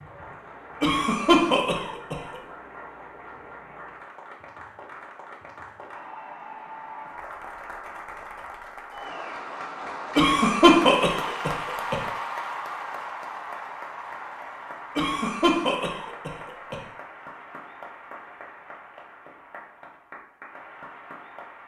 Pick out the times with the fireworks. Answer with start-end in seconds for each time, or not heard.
not heard.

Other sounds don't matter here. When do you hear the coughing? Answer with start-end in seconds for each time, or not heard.
0.8-2.4, 10.2-11.9, 14.9-16.8.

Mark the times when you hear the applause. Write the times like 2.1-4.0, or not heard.
0.0-21.6.